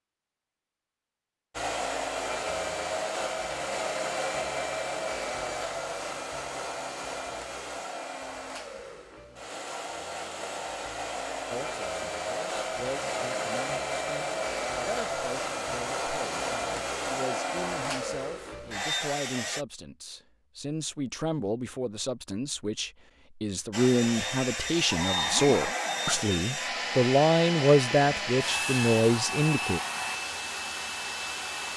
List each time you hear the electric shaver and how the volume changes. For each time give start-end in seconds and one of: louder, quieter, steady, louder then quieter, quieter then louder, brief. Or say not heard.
not heard.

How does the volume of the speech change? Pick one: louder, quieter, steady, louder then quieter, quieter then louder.
louder.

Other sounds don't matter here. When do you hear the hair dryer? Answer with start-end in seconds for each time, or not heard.
1.5-19.6, 23.7-31.7.